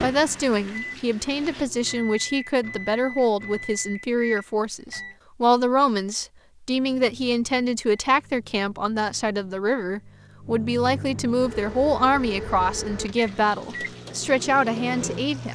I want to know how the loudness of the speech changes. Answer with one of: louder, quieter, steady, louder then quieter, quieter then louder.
steady.